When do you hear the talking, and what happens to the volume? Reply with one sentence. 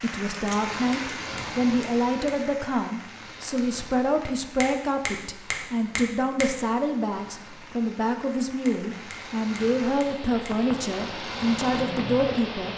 You can hear the talking from 0.0 to 12.7 s, at a steady volume.